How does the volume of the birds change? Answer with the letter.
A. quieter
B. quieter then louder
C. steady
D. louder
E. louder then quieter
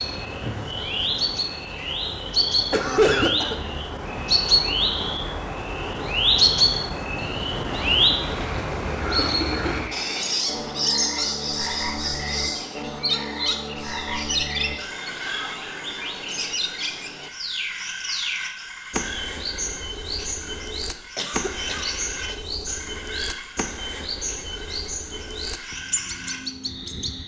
A.